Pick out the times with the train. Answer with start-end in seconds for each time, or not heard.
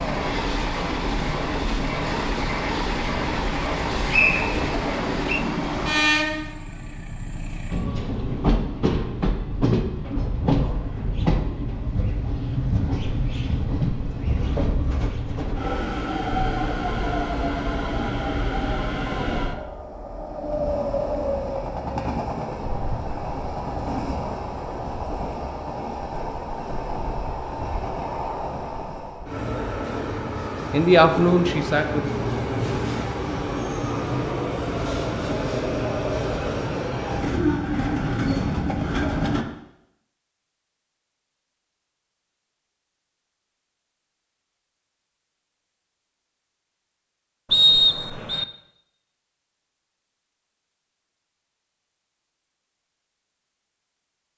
0.0-39.5.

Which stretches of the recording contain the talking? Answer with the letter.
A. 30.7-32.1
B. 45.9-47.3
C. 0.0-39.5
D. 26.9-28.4
A.